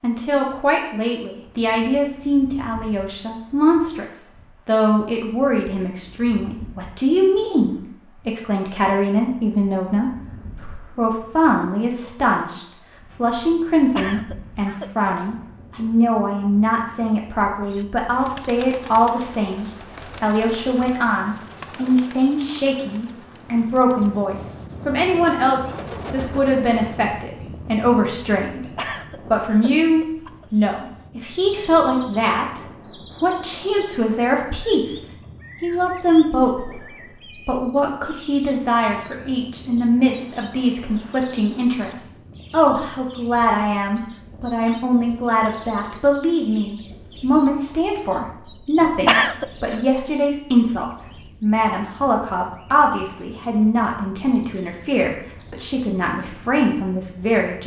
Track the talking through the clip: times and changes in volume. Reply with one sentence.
The talking can be heard from 0.0 to 57.6 s, at a steady volume.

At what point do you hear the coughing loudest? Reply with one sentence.
The volume of the coughing peaks at 49 seconds.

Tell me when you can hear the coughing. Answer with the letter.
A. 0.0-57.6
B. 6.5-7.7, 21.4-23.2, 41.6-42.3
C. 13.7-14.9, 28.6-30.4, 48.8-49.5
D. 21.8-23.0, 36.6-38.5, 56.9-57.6
C.